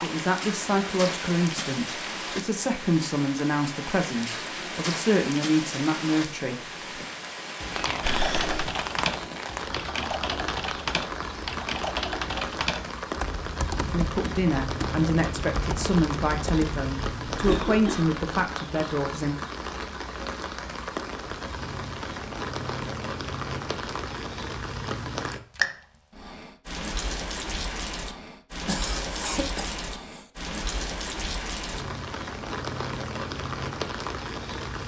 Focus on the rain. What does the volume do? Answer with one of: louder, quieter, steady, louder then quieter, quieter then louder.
steady.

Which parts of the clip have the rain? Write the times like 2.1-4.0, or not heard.
0.0-34.8.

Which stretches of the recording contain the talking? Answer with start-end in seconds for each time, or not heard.
0.0-7.0, 13.8-19.4.